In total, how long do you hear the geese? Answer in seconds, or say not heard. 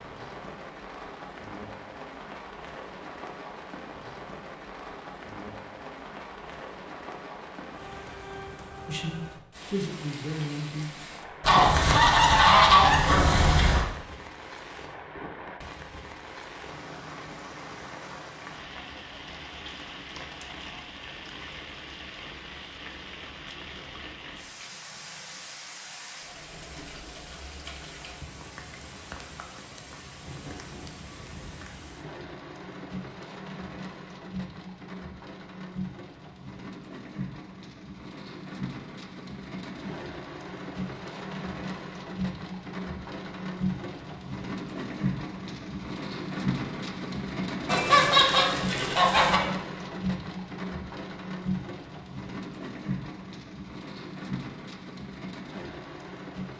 4 s.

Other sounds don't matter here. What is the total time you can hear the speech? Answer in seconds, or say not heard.
2 s.